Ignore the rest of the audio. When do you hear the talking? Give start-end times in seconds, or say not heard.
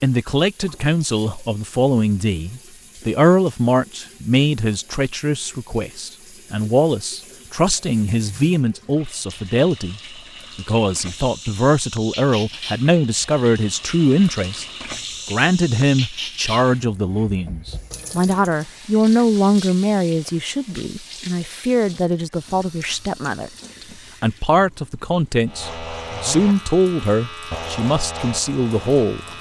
0.0-14.7, 15.2-29.2.